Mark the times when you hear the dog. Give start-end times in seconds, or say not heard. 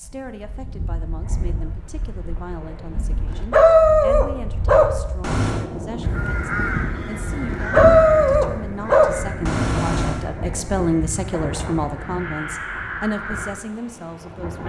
3.2-5.7, 7.5-10.2.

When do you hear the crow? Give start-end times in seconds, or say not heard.
6.0-13.6.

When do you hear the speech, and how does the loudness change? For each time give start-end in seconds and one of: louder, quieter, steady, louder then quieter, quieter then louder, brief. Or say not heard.
0.0-14.6 louder.